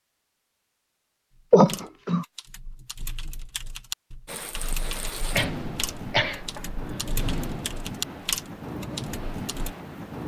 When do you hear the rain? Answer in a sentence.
The rain can be heard from 4.2 to 10.2 s.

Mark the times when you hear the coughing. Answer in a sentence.
You can hear the coughing from 1.5 to 2.2 s and from 5.3 to 7.2 s.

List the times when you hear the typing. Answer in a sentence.
The typing can be heard from 1.4 to 9.8 s.